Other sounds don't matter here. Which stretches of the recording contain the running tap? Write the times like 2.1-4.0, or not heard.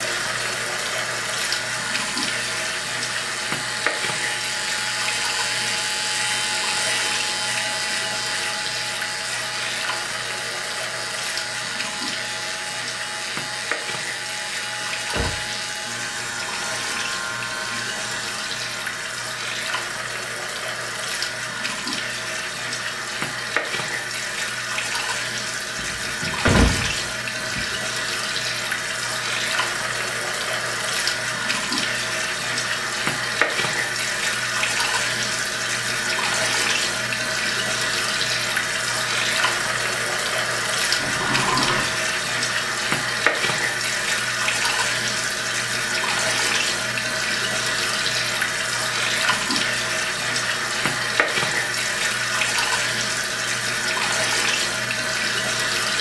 0.0-55.9.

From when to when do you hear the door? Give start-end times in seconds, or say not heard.
14.8-15.3, 25.8-27.7, 41.0-41.9.